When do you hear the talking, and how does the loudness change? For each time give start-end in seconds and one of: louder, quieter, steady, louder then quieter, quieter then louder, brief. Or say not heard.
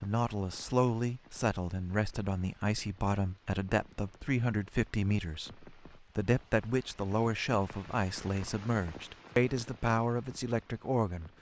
0.0-11.3 steady.